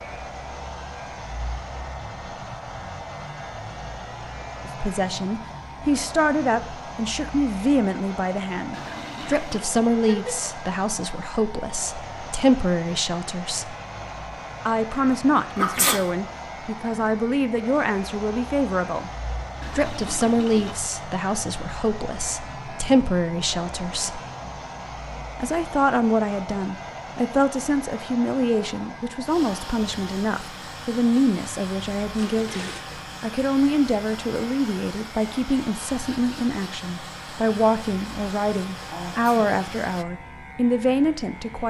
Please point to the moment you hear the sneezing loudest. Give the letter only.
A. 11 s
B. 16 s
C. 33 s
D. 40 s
B.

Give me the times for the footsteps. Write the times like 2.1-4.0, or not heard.
not heard.